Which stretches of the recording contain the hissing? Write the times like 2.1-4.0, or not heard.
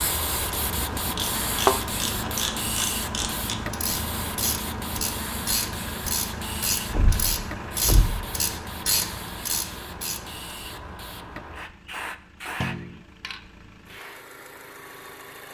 0.0-14.2.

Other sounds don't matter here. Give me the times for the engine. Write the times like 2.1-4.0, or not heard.
0.2-15.5.